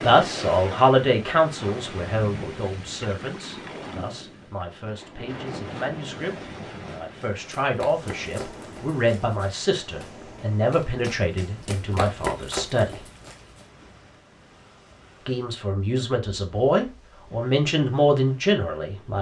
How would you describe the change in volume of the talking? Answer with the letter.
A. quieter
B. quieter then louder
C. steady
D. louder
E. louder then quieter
B.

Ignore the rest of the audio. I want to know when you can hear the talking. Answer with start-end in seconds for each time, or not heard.
0.0-13.0, 15.2-19.1.